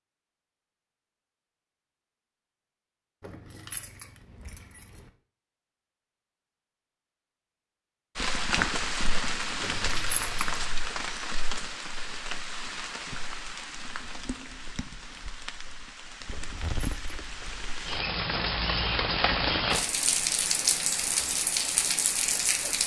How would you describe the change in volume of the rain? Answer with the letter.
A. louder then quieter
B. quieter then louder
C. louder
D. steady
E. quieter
B.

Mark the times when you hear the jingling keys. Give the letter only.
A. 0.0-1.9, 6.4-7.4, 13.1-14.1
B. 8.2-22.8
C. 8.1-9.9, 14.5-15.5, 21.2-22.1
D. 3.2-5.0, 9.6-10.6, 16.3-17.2
D.